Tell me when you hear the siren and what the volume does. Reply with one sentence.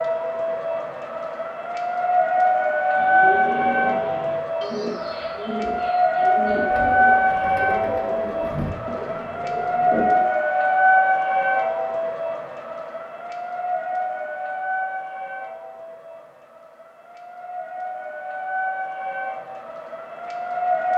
The siren can be heard from 0.0 to 20.9 s, getting quieter.